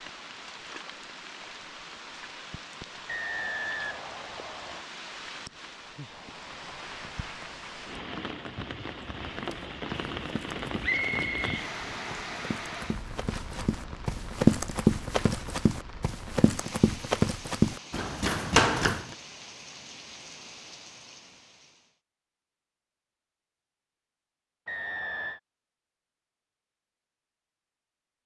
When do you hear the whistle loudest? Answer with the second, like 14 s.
11 s.